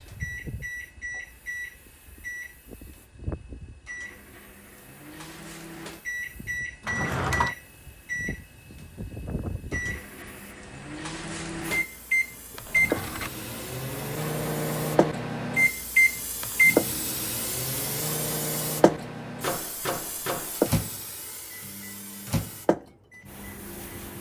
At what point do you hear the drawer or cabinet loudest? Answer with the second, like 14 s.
7 s.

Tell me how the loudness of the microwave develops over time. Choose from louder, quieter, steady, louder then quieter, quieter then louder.
louder then quieter.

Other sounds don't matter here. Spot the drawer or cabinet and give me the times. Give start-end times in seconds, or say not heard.
6.8-7.5, 12.5-13.3.